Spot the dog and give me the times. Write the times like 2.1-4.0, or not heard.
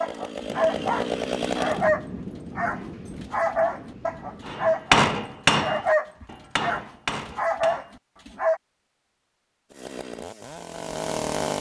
0.0-8.6.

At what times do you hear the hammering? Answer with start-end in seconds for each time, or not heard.
4.5-7.9.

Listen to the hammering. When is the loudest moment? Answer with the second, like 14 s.
5 s.